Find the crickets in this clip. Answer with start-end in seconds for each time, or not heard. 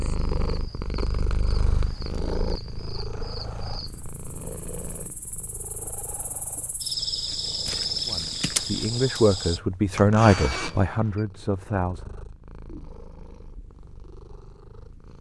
0.0-9.6.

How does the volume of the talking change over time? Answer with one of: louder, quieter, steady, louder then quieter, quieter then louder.
louder then quieter.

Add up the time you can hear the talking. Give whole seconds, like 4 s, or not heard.
4 s.